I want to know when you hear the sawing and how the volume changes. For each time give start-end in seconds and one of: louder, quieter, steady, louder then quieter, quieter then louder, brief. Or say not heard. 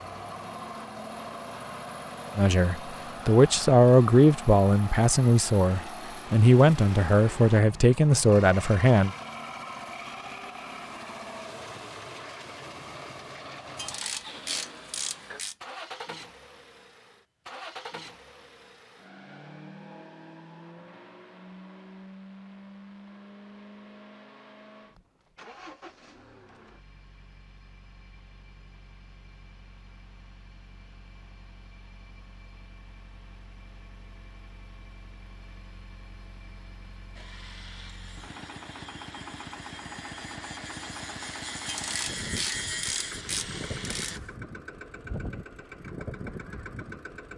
37.1-44.2 louder.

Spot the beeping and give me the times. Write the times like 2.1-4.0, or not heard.
not heard.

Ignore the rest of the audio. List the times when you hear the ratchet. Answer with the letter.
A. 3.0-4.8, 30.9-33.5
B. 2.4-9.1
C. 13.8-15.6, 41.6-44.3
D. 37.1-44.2
C.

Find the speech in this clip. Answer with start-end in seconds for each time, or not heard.
2.4-9.1.